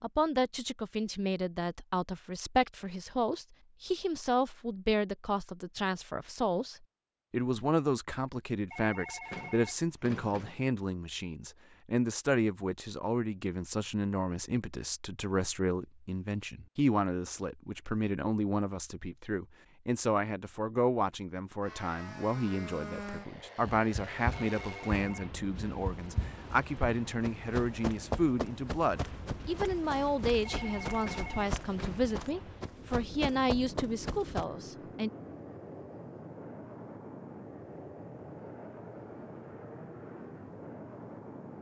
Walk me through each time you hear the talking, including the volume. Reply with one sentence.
The talking can be heard from 0.0 to 35.1 s, at a steady volume.